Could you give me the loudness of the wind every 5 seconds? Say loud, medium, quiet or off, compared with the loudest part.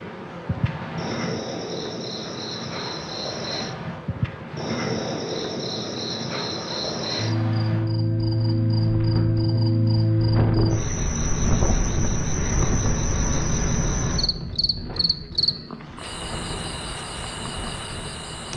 medium, medium, loud, medium.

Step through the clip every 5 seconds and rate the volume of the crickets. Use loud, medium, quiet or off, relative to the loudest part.
medium, loud, loud, medium.